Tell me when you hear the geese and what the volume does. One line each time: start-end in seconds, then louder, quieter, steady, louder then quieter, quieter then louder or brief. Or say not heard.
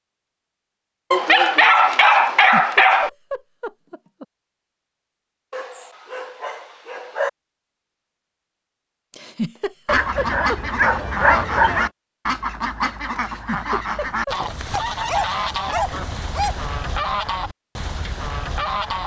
9.8-19.0 steady.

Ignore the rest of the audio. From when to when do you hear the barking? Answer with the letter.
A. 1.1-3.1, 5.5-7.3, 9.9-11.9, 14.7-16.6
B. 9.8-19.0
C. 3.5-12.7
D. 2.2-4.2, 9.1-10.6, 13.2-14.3
A.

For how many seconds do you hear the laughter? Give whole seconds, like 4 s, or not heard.
5 s.